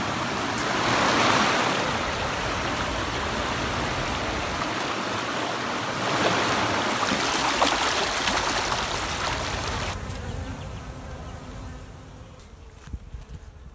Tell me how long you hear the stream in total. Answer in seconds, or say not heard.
10 s.